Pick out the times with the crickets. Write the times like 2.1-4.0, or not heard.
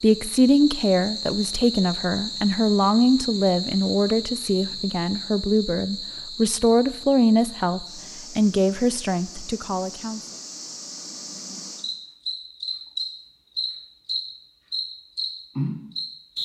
0.0-16.4.